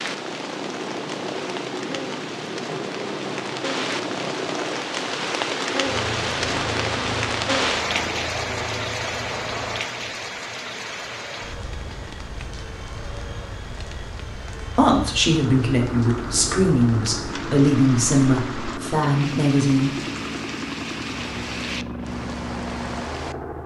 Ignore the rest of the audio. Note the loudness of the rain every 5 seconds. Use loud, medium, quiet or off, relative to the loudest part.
medium, loud, medium, medium, medium.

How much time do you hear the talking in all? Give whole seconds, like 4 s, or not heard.
5 s.